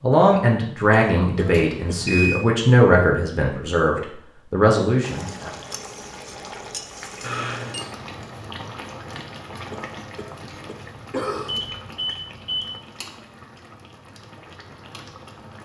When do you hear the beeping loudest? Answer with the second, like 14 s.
2 s.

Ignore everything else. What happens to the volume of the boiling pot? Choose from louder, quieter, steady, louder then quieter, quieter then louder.
quieter.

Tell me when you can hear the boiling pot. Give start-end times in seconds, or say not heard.
5.0-15.5.